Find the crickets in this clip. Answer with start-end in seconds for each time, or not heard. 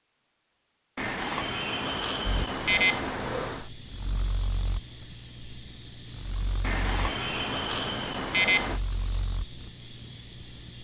2.2-10.7.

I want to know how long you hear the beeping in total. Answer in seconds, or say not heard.
5 s.